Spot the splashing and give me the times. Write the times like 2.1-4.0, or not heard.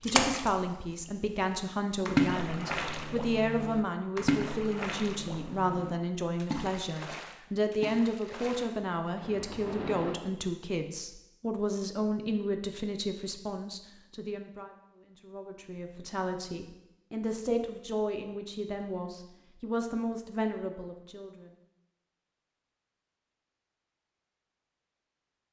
0.0-0.7, 2.0-10.2.